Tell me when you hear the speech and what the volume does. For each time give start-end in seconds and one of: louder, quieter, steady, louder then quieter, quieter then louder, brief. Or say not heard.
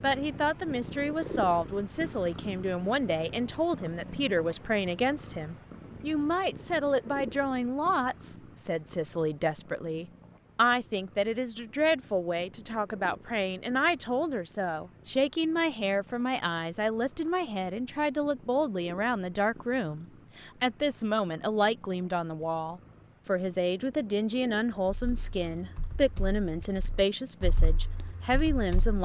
0.0-28.9 steady.